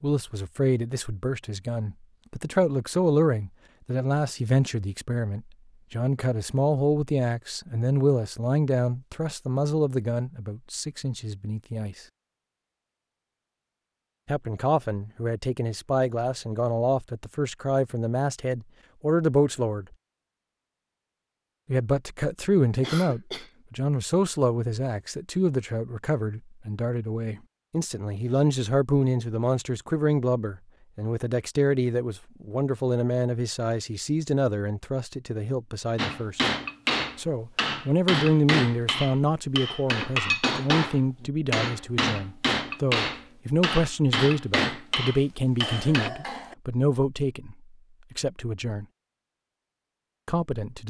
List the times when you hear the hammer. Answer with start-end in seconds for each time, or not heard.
36.0-46.1.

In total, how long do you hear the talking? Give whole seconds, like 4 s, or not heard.
45 s.